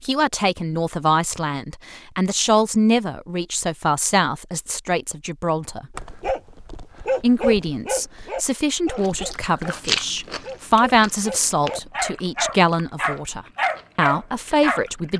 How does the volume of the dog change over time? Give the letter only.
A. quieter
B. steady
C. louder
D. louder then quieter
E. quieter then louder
E.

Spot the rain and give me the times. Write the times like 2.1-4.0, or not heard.
not heard.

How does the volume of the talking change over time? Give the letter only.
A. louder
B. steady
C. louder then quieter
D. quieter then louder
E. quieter
B.